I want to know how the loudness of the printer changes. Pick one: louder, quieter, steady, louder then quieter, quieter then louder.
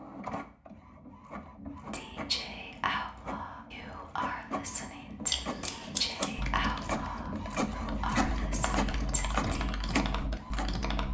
louder.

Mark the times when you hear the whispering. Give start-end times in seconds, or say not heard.
1.9-9.8.